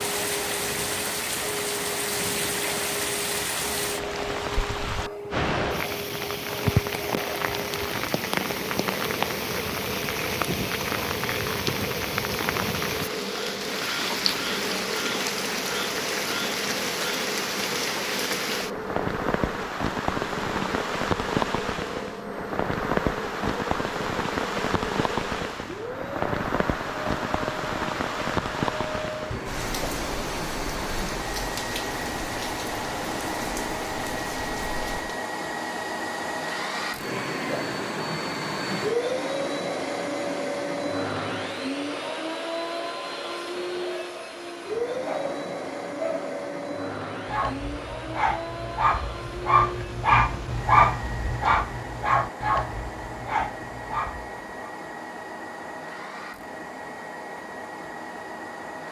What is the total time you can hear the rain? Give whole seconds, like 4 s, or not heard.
35 s.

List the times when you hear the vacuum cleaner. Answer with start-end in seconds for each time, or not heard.
0.0-58.8.